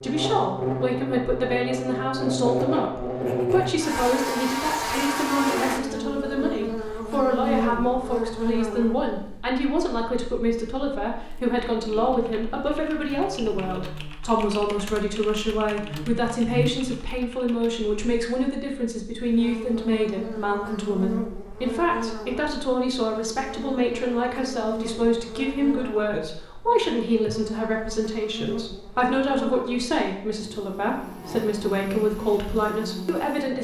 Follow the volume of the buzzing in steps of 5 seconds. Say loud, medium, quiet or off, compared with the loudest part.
loud, loud, quiet, medium, medium, medium, medium.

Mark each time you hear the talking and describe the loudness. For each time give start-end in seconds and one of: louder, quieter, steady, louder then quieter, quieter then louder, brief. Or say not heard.
0.0-33.6 steady.